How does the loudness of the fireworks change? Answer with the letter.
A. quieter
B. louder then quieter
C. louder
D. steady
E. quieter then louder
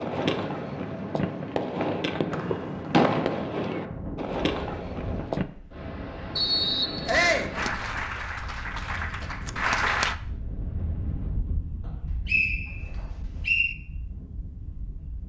B.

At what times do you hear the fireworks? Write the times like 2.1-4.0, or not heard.
0.0-5.5.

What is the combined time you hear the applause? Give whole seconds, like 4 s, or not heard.
3 s.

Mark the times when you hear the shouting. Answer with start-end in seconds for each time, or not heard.
7.0-7.5.